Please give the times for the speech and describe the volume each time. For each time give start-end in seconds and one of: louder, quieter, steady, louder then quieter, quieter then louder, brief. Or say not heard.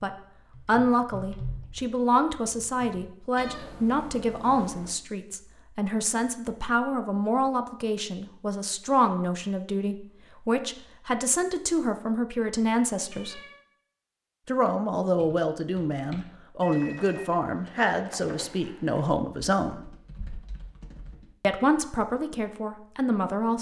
0.0-13.4 steady
14.4-19.9 steady
21.4-23.5 brief.